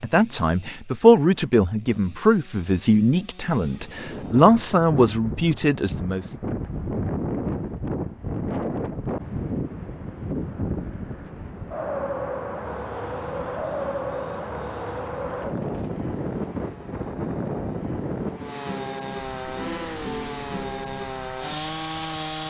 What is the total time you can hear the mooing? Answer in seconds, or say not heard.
not heard.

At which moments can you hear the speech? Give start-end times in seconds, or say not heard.
0.0-6.2.